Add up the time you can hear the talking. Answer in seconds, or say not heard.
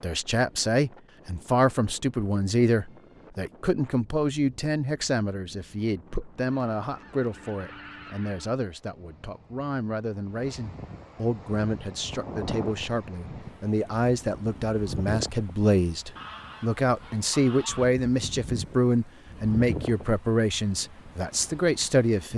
22 s.